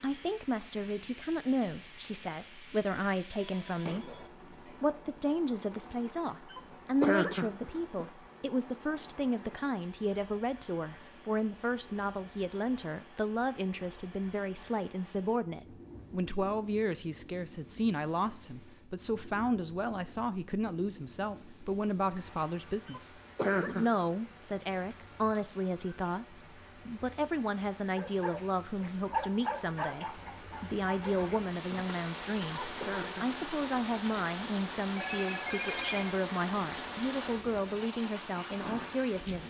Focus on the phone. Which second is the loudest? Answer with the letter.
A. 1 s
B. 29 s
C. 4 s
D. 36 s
D.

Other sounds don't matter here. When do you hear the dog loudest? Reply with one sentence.
The loudest moment of the dog is at 29 seconds.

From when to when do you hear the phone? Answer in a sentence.
The phone can be heard from 3.4 to 4.8 s and from 35.0 to 36.2 s.